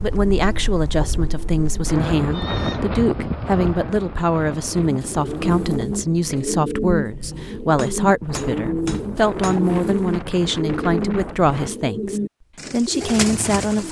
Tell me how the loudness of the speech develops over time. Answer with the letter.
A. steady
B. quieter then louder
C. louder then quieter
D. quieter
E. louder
A.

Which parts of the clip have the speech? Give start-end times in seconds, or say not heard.
0.0-13.8.